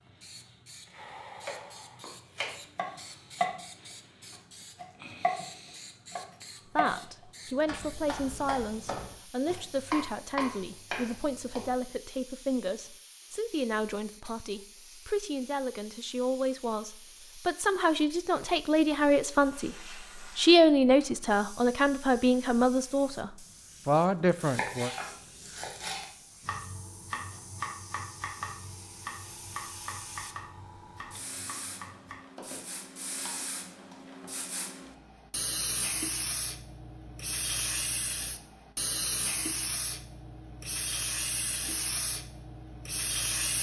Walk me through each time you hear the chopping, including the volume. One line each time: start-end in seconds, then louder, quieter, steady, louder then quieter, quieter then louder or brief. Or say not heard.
1.4-3.6 brief
4.3-5.5 brief
6.1-11.7 quieter then louder
24.1-34.5 quieter.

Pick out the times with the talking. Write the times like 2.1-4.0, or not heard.
6.8-19.8, 20.4-24.9.